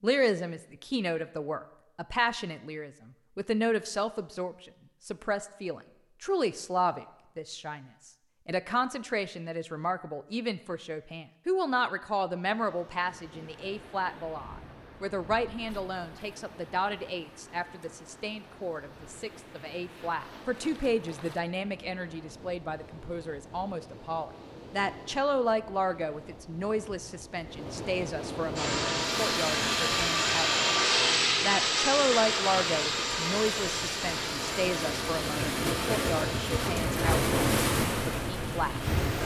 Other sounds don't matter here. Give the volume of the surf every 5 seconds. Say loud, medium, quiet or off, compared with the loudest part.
off, off, quiet, quiet, quiet, medium, medium, loud.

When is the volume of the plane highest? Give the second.
31 s.